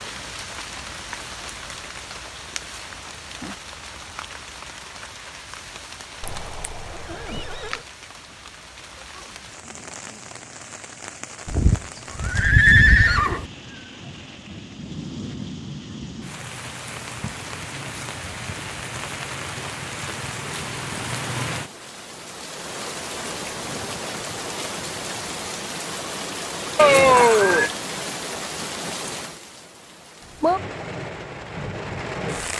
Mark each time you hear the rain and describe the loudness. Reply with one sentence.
The rain can be heard from 0.0 to 32.5 s, getting louder.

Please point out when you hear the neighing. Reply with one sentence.
The neighing can be heard from 6.2 to 7.8 s, from 11.4 to 13.4 s and from 26.8 to 27.7 s.